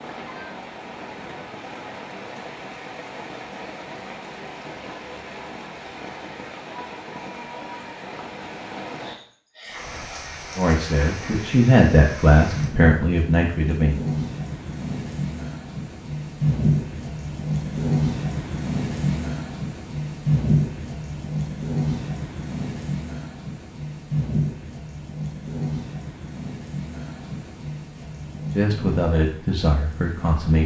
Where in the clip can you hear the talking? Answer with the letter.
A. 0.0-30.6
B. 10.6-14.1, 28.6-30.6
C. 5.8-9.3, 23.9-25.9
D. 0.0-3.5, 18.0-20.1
B.